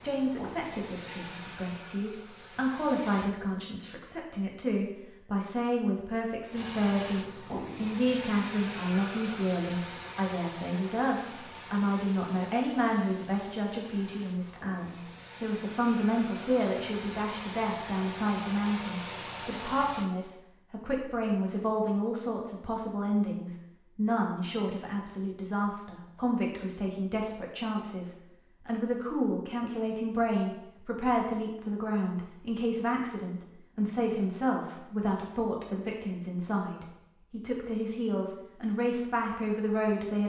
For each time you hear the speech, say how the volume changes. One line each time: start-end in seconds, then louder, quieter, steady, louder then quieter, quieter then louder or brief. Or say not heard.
0.0-40.2 steady.